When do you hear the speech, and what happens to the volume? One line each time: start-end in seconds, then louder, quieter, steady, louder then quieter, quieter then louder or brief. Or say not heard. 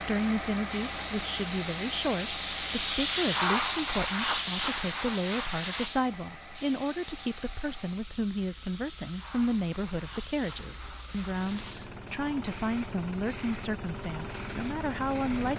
0.0-15.5 steady.